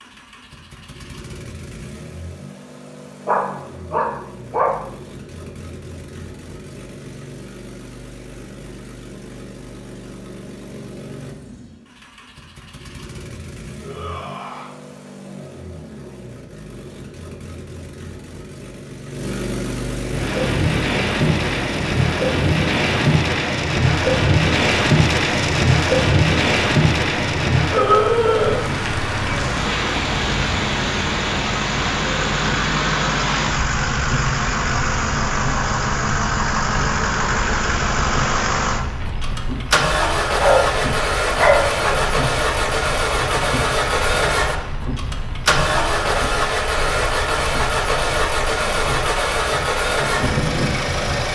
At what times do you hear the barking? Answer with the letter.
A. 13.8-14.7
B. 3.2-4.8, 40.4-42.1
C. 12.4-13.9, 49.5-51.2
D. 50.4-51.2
B.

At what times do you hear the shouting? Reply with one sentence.
The shouting can be heard from 13.8 to 14.7 s.